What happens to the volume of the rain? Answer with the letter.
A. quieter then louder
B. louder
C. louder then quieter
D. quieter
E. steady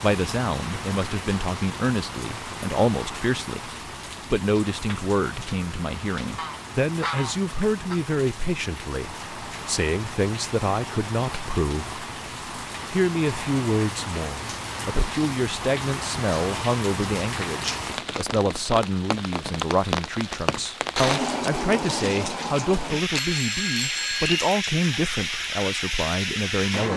B.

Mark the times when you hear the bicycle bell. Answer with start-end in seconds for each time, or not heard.
23.1-24.4.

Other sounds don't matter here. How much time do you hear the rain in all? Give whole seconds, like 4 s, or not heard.
27 s.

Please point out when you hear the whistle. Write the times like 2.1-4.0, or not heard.
not heard.